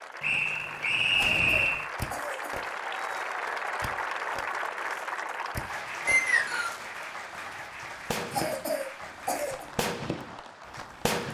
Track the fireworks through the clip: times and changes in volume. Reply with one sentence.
The fireworks can be heard from 1.1 to 11.2 s, getting quieter then louder.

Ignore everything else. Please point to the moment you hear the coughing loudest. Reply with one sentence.
The volume of the coughing peaks at 9 seconds.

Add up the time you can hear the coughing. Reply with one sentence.
You can hear the coughing for 3 seconds altogether.